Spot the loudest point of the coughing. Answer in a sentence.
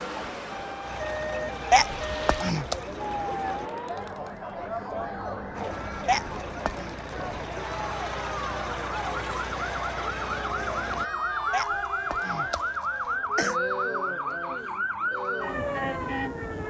The volume of the coughing peaks at 2 seconds.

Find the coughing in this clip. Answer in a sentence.
The coughing can be heard from 1.7 to 2.8 s, from 6.0 to 6.9 s and from 11.5 to 13.6 s.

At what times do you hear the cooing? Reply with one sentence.
The cooing can't be heard in this clip.